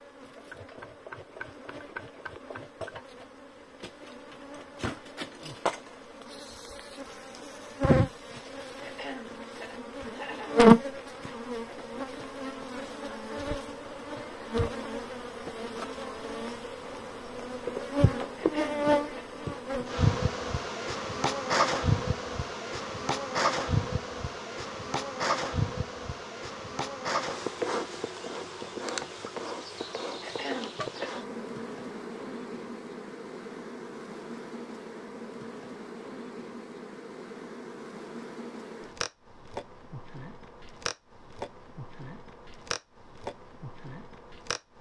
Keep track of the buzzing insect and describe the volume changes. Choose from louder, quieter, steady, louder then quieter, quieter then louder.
louder then quieter.